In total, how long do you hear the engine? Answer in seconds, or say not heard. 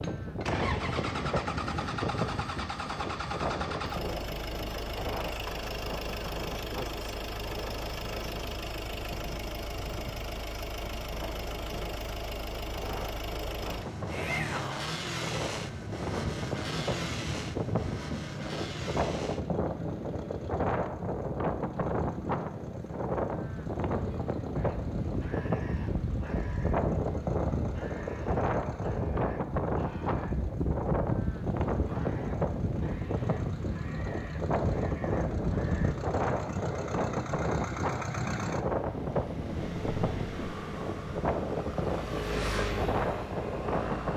44 s.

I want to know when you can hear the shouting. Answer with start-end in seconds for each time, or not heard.
14.1-14.9.